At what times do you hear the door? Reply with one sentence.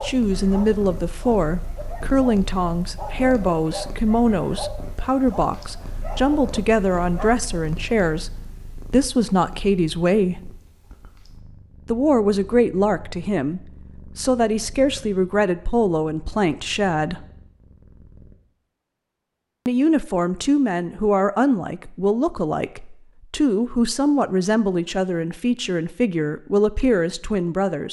The door can't be heard in this clip.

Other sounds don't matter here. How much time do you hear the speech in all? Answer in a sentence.
You can hear the speech for 24 seconds altogether.